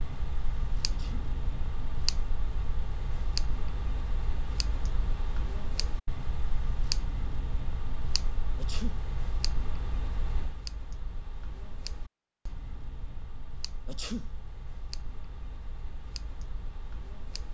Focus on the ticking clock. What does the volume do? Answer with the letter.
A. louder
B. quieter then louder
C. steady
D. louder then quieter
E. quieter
E.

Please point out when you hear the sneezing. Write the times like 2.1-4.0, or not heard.
0.8-1.4, 8.6-9.1, 13.8-14.3.